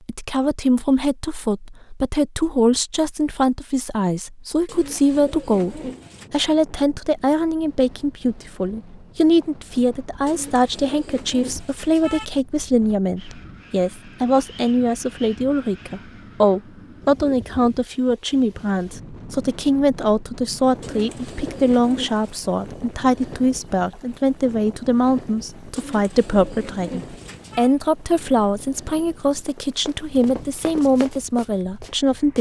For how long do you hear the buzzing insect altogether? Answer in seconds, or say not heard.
not heard.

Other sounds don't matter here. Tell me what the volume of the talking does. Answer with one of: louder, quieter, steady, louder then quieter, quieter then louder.
steady.